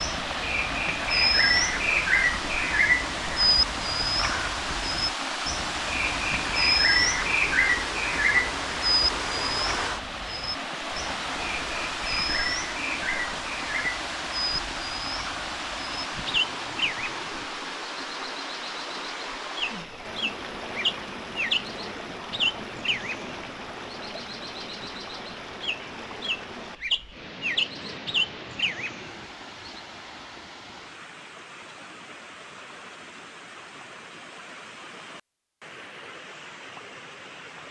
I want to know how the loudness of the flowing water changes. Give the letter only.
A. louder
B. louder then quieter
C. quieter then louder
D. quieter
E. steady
D.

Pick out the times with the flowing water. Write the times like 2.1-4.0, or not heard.
0.0-37.6.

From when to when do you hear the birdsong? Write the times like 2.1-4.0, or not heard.
0.0-29.8.